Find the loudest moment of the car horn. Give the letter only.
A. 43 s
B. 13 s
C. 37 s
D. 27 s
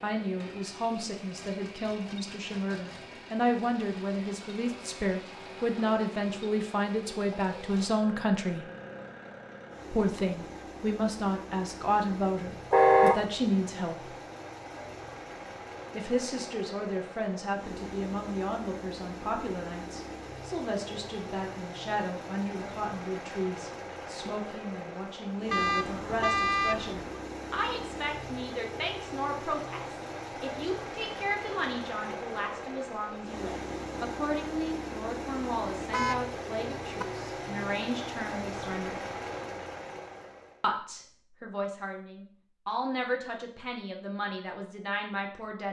B.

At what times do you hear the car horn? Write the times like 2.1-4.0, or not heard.
12.7-13.2, 25.5-27.2, 35.8-37.0.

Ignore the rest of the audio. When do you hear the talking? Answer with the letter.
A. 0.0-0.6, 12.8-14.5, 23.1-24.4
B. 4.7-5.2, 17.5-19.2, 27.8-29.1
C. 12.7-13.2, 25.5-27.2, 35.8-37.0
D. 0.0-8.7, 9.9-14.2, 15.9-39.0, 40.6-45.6
D.